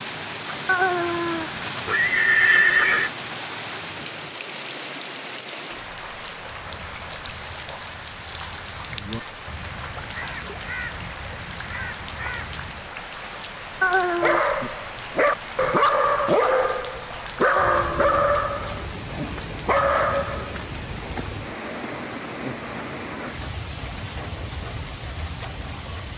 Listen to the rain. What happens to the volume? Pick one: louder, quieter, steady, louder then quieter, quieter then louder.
steady.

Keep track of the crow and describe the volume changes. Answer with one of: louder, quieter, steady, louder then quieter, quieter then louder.
louder.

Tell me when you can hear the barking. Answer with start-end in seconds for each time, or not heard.
14.2-20.6.